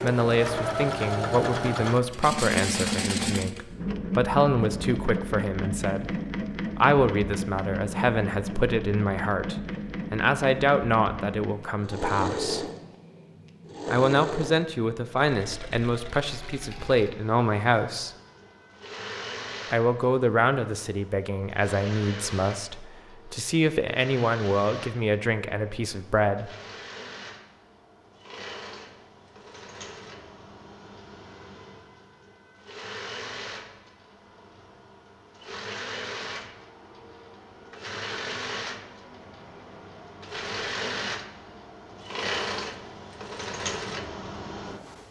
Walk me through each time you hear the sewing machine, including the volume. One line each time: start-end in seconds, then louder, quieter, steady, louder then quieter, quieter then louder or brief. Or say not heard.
0.0-45.0 quieter then louder.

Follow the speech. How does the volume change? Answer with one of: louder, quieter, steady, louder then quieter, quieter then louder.
steady.